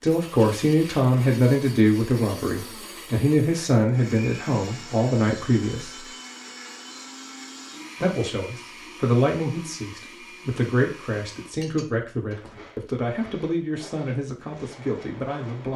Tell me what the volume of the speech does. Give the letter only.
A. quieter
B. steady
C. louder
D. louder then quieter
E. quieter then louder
A.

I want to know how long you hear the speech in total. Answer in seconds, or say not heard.
14 s.